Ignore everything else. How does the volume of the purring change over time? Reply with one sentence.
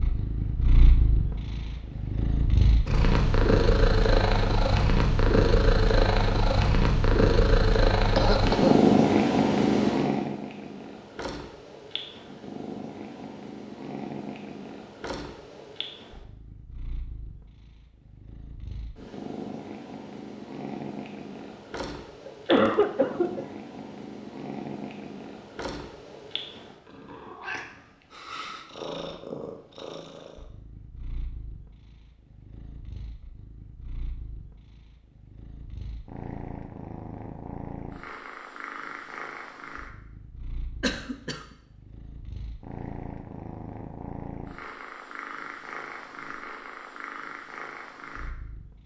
The loudness of the purring goes down.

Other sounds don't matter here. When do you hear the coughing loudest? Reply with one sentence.
The volume of the coughing peaks at 23 seconds.